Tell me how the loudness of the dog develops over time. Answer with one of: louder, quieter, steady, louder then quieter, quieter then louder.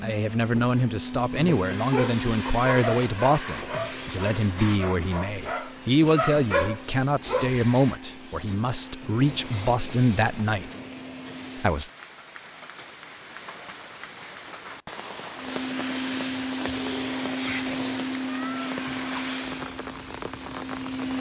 quieter then louder.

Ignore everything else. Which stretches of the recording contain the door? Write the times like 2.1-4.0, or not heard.
not heard.